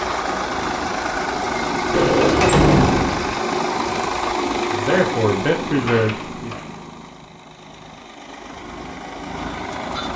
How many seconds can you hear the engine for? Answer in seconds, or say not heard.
10 s.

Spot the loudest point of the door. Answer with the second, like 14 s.
3 s.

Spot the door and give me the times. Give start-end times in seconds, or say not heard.
1.9-3.4, 5.7-6.7.